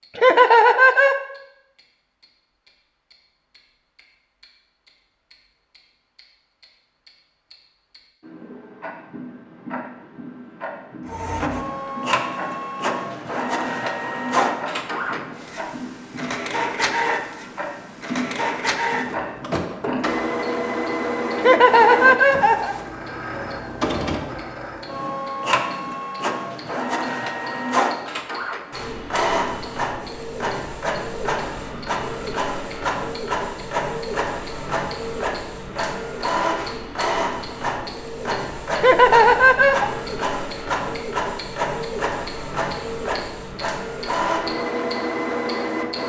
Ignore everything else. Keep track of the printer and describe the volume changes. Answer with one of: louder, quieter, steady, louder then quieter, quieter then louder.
steady.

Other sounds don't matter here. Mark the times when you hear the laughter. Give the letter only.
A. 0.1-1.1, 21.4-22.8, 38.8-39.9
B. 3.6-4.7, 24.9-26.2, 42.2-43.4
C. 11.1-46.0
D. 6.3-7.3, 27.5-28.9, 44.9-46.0
A.